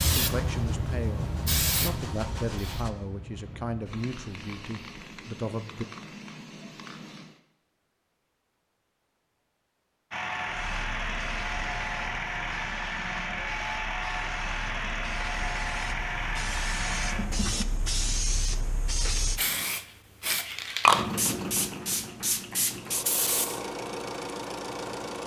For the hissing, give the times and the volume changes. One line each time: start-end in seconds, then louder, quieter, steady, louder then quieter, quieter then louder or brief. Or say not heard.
0.0-7.4 quieter
10.4-23.6 louder.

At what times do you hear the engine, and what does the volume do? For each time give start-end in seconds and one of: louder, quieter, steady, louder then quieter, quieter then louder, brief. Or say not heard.
0.0-2.9 brief
10.1-17.6 steady
20.9-25.2 quieter then louder.